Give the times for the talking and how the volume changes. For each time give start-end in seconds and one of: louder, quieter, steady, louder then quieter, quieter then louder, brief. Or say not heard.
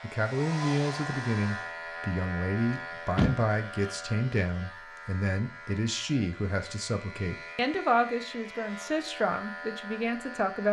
0.0-10.6 steady.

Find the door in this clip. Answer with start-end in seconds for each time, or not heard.
2.7-4.0.